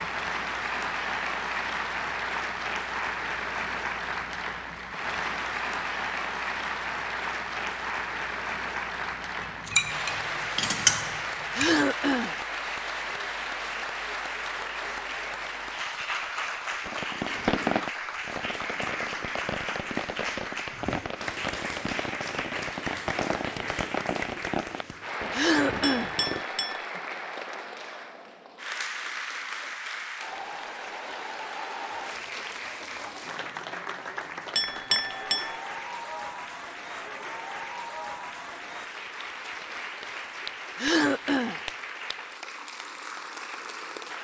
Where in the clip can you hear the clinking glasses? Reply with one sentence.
The clinking glasses can be heard from 9.4 to 11.8 s, from 25.8 to 26.9 s and from 34.5 to 35.6 s.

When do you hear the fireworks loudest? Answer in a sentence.
The loudest moment of the fireworks is at 18 seconds.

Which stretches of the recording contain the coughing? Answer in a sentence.
You can hear the coughing from 11.6 to 12.3 s, from 25.3 to 26.1 s and from 40.8 to 41.6 s.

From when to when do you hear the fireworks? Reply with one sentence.
The fireworks can be heard from 16.8 to 26.4 s.